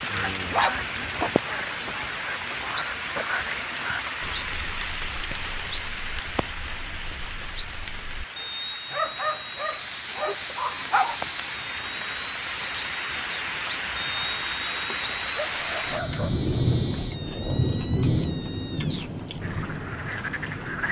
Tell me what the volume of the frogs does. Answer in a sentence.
The loudness of the frogs goes down, then up.